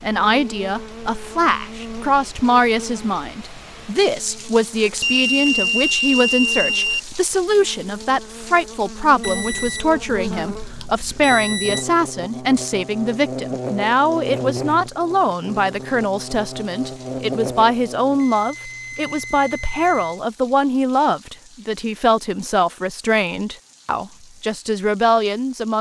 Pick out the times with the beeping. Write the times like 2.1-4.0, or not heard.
5.0-7.0, 9.2-11.8, 18.1-20.2.